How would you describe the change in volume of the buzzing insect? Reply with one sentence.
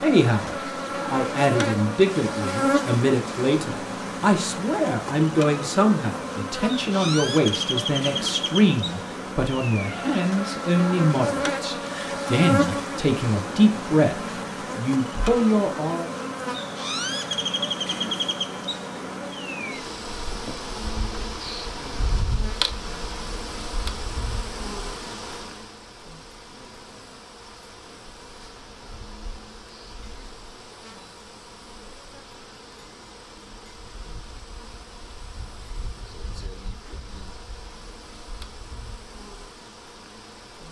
The loudness of the buzzing insect goes down.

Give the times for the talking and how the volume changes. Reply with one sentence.
You can hear the talking from 0.0 to 16.1 s, at a steady volume.